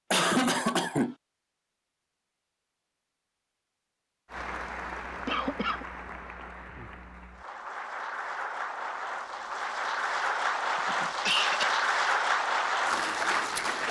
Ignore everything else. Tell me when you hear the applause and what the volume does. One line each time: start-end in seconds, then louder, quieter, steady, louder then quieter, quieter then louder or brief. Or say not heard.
4.2-13.8 louder.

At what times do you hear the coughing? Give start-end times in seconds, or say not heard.
0.1-1.1, 5.2-5.8, 10.8-11.7.